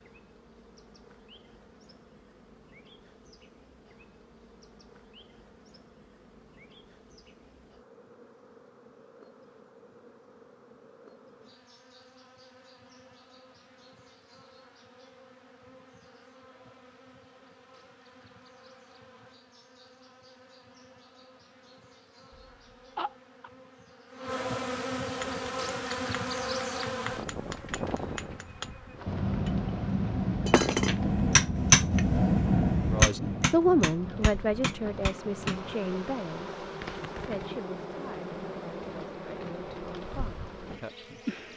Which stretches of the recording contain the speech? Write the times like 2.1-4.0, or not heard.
32.9-41.3.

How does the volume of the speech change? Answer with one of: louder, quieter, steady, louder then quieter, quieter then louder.
quieter.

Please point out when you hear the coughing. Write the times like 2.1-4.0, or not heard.
22.3-23.5.